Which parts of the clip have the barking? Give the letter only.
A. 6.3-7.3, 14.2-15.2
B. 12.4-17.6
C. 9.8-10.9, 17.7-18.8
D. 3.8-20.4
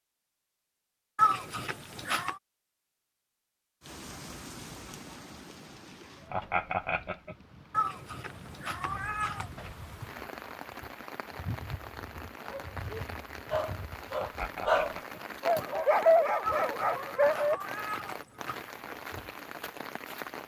B.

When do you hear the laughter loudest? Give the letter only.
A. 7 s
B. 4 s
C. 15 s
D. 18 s
A.